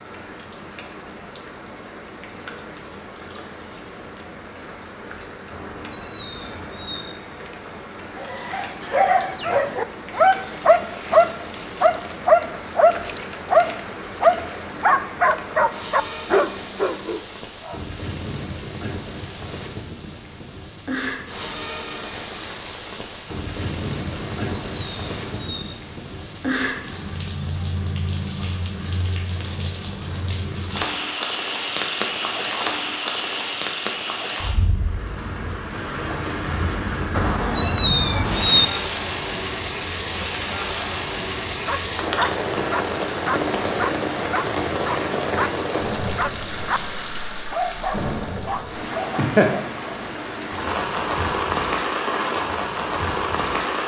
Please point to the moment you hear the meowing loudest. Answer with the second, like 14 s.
38 s.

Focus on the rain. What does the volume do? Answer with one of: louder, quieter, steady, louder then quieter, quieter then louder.
louder.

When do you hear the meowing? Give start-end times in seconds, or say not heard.
5.5-7.0, 24.1-25.6, 37.1-38.6.